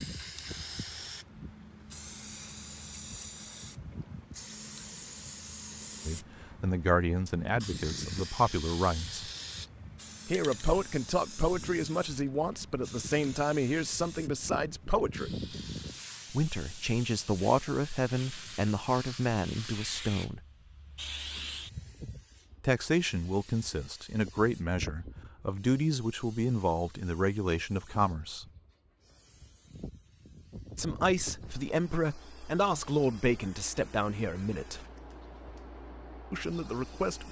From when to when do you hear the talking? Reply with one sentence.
The talking can be heard from 6.0 to 9.3 s, from 10.2 to 15.3 s, from 16.3 to 20.4 s, from 22.6 to 28.4 s, from 30.8 to 34.9 s and from 36.3 to 37.2 s.